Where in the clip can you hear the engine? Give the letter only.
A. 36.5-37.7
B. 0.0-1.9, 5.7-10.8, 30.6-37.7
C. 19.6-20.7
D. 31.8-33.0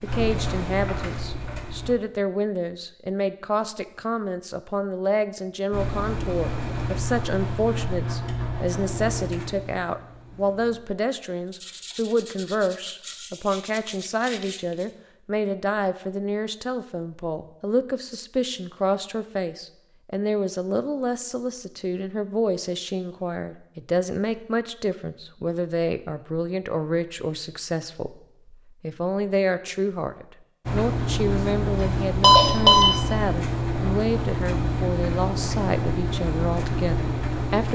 B.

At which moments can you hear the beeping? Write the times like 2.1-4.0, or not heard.
31.8-33.0.